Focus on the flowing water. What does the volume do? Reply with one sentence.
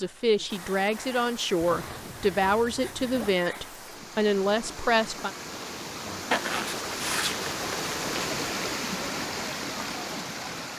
The loudness of the flowing water goes up.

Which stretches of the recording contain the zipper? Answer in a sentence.
The zipper can be heard from 1.6 to 3.4 s and from 6.3 to 8.2 s.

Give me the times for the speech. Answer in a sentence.
You can hear the speech from 0.0 to 5.3 s.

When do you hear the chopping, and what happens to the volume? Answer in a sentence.
You can't hear the chopping here.